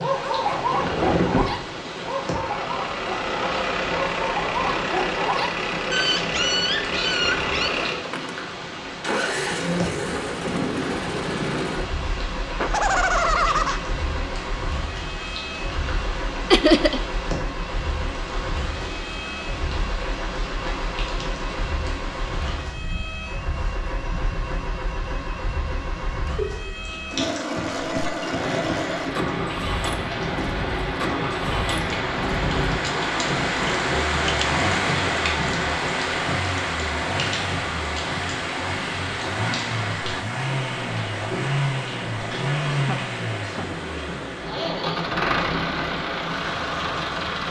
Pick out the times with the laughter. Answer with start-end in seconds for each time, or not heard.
12.6-13.8, 16.5-17.0, 42.8-43.6.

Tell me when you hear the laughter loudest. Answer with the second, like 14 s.
17 s.